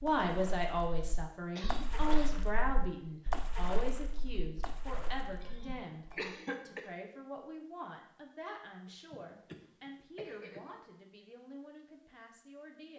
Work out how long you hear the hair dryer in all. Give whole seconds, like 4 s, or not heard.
not heard.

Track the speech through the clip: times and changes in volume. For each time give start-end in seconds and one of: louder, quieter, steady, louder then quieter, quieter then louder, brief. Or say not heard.
0.0-6.0 quieter
6.7-12.9 quieter.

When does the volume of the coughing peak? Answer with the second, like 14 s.
6 s.